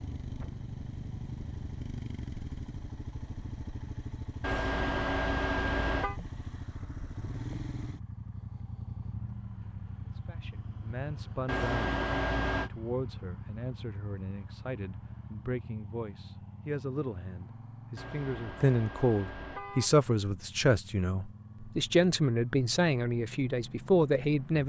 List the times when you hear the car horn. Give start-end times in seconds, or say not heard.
4.4-6.2, 11.4-12.7, 17.9-20.0.